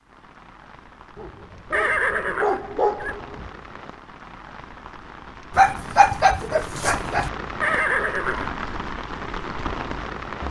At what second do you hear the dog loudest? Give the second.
6 s.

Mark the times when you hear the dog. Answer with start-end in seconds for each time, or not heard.
1.1-3.5, 5.5-7.3.